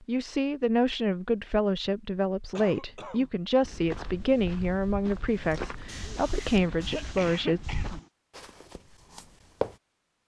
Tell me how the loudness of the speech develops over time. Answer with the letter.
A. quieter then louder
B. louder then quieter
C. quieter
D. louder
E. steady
E.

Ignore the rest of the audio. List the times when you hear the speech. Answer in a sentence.
The speech can be heard from 0.1 to 7.6 s.